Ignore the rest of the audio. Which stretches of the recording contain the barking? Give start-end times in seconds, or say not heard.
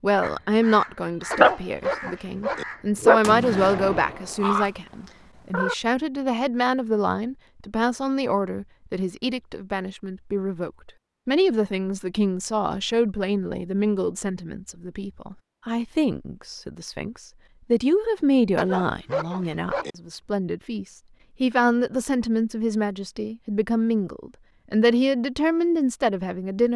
1.3-2.6, 18.6-19.9.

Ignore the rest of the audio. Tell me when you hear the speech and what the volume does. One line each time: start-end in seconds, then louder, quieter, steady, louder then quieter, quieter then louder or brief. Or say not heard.
0.0-26.7 steady.